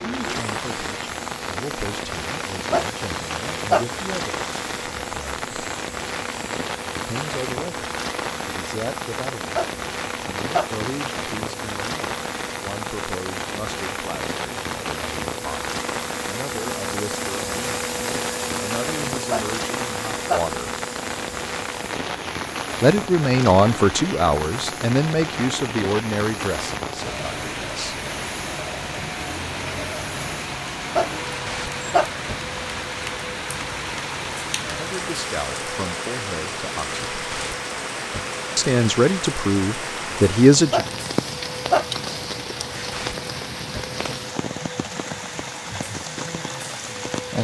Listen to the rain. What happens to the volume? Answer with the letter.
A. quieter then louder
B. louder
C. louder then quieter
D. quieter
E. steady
E.